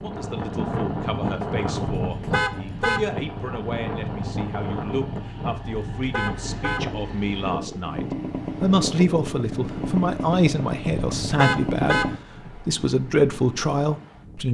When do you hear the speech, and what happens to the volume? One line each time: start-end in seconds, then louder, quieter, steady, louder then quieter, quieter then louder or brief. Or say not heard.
0.0-14.4 louder.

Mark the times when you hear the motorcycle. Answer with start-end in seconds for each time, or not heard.
0.0-12.2.